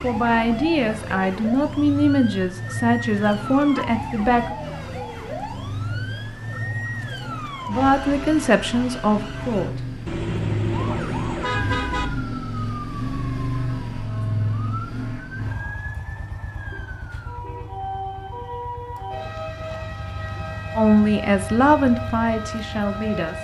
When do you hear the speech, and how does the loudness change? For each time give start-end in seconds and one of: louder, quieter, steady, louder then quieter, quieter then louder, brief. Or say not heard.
0.0-4.5 steady
7.6-9.8 brief
20.8-23.3 brief.